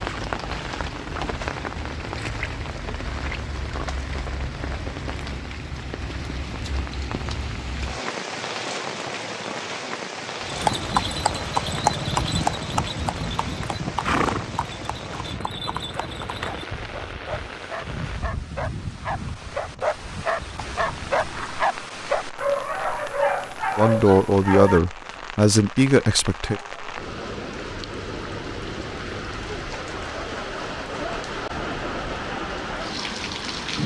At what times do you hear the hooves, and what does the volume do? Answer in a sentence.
You can hear the hooves from 10.4 to 21.7 s, getting quieter.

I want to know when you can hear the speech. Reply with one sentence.
You can hear the speech from 23.8 to 26.6 s.